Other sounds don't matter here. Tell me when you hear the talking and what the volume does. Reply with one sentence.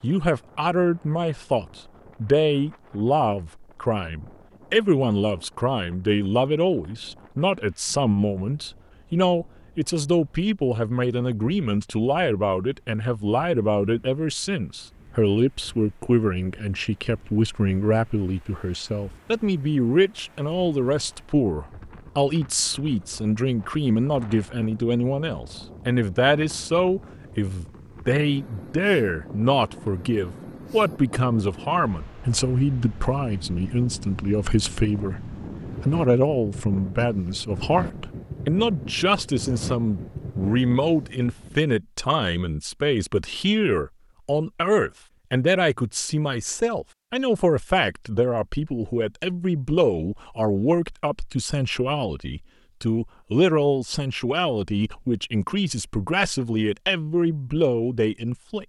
The talking can be heard from 0.0 to 58.6 s, at a steady volume.